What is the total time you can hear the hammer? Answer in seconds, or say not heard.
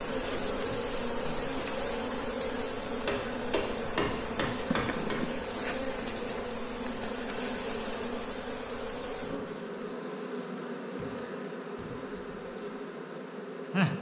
2 s.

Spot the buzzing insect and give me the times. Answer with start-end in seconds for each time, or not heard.
0.0-13.9.